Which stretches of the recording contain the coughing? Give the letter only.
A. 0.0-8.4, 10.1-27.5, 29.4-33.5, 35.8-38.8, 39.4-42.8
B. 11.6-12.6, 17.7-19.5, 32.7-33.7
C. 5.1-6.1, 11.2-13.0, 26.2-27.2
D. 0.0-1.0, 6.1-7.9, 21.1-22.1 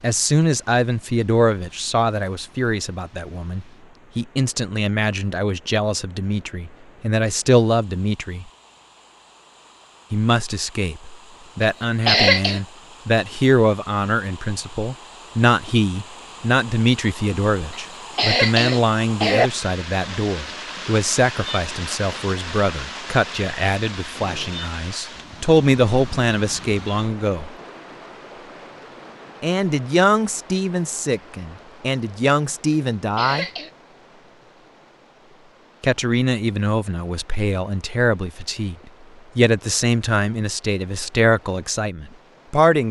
B.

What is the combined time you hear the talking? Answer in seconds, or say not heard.
36 s.